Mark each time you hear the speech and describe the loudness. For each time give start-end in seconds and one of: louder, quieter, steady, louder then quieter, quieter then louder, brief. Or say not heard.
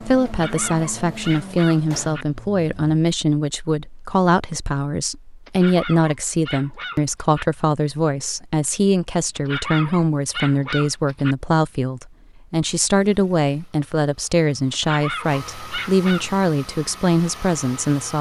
0.0-18.1 steady.